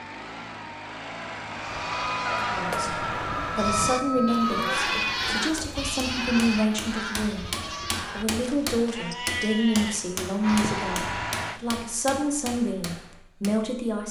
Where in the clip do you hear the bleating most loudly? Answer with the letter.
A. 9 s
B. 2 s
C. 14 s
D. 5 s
D.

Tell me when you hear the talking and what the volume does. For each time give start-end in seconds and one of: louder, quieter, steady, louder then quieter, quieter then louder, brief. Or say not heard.
2.5-14.0 steady.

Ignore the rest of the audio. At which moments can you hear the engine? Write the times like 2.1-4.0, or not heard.
0.0-4.0, 9.9-11.6.